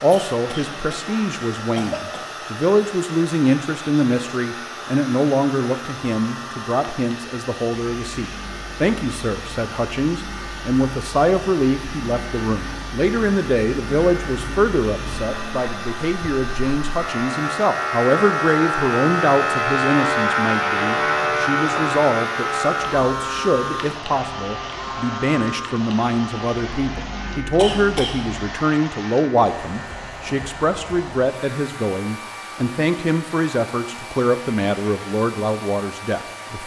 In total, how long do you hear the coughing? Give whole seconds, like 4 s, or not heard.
3 s.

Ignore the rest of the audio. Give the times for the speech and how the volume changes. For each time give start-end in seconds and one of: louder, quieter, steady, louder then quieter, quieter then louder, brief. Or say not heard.
0.0-36.6 steady.